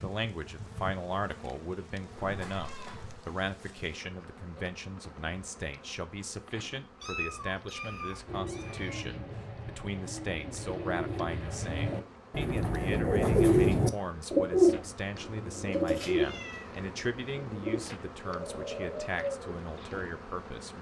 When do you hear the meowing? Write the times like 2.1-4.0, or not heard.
2.1-3.2, 7.0-9.1, 15.7-16.9.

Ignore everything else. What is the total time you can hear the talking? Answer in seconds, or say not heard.
21 s.